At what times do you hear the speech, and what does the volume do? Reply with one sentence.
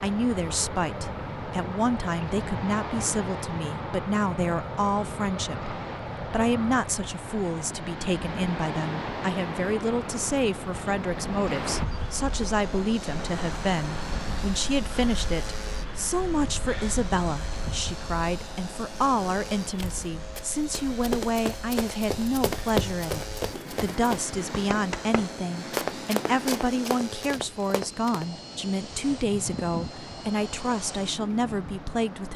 The speech can be heard from 0.0 to 32.3 s, at a steady volume.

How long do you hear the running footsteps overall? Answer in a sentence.
The running footsteps can be heard for 9 seconds in total.